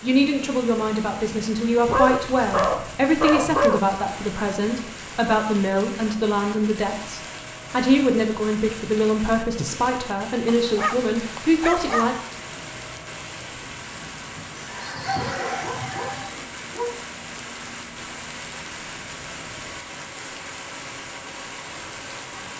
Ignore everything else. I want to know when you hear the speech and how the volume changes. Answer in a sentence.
You can hear the speech from 0.0 to 12.2 s, at a steady volume.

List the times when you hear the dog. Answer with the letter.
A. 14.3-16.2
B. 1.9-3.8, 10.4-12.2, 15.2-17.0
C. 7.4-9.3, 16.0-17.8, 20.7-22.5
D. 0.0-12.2
B.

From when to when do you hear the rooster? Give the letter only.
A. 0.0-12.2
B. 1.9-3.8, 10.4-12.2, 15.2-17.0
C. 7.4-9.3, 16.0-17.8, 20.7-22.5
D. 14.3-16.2
D.